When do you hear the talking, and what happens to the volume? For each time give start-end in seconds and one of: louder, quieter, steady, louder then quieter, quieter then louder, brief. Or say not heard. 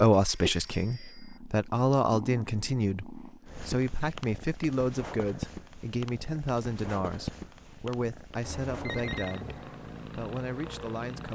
0.0-11.3 quieter.